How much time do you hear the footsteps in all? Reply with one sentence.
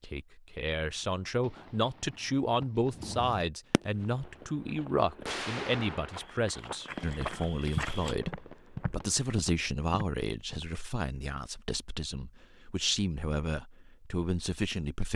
You can hear the footsteps for 7 seconds altogether.